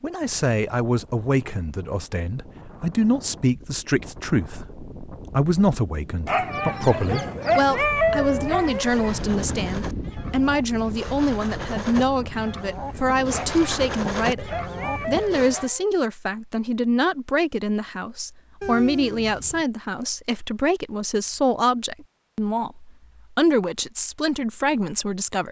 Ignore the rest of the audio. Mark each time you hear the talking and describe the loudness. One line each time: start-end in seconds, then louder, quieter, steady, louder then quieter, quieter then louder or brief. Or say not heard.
0.0-25.4 steady.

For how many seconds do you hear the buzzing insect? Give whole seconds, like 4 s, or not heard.
not heard.